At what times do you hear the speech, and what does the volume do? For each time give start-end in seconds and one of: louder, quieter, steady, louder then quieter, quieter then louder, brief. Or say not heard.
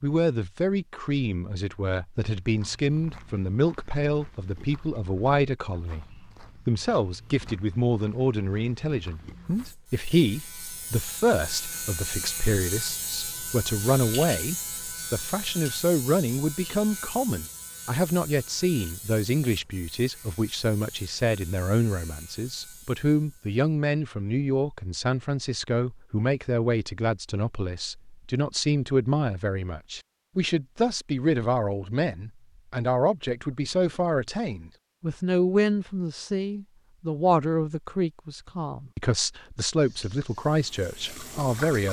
0.0-41.8 steady.